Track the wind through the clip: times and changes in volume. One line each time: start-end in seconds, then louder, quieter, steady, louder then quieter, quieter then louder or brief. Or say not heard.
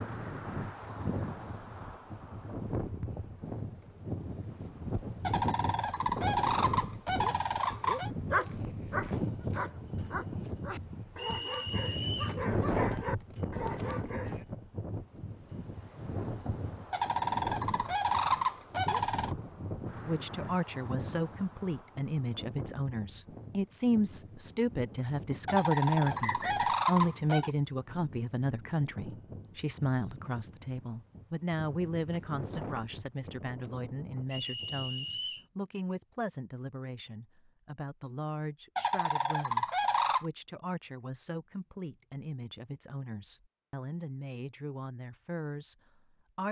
0.0-35.5 quieter.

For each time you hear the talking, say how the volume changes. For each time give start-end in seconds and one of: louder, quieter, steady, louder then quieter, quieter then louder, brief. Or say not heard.
20.1-46.4 quieter.